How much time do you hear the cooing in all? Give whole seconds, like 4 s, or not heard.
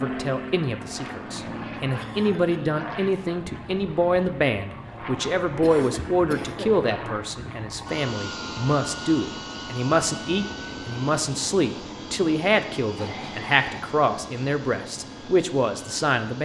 not heard.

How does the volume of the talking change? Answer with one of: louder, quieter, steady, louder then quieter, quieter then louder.
steady.